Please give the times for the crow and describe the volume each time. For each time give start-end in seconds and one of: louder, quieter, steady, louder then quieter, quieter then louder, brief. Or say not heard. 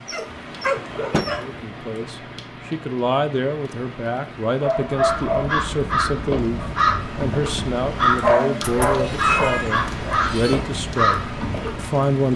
4.8-11.9 steady.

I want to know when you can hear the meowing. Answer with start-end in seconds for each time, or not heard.
8.6-10.6.